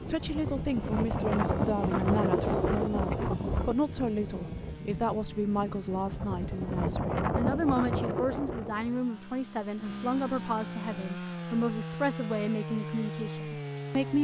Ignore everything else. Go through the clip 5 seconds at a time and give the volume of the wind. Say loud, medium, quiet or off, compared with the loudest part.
loud, loud, off.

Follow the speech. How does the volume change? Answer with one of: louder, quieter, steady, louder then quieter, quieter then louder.
steady.